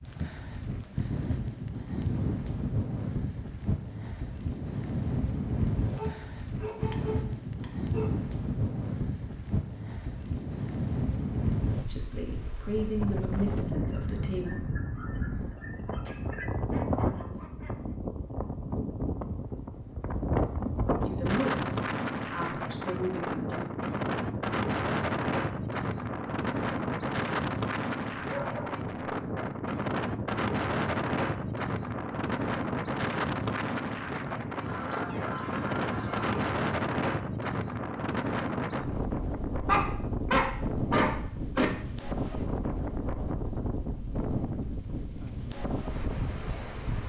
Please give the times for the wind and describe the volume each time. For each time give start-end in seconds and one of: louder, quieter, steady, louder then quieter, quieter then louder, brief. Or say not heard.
0.0-47.0 steady.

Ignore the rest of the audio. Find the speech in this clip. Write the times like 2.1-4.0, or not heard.
11.8-14.7, 20.9-23.6.